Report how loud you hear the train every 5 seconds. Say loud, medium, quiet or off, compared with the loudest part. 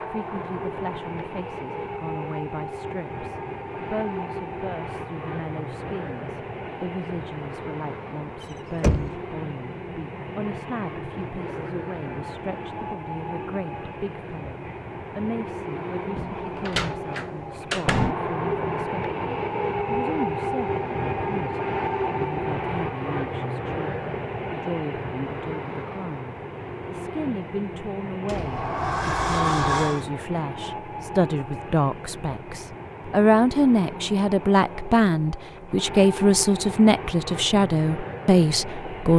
medium, medium, medium, loud, loud, medium, medium, medium.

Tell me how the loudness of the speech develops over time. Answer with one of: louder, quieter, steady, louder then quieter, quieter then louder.
louder.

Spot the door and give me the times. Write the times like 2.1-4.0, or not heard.
8.4-9.1, 16.1-18.1, 28.2-30.1.